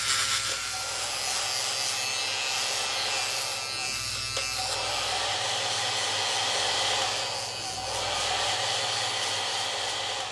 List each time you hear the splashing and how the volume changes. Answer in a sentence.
The splashing can't be heard in this clip.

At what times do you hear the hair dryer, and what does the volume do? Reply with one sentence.
You can hear the hair dryer from 0.0 to 10.2 s, getting louder.